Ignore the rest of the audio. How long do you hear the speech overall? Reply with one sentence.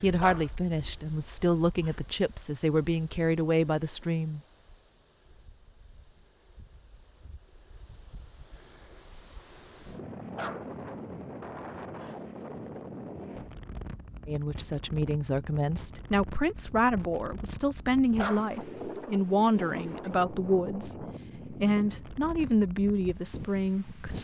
You can hear the speech for 14 seconds altogether.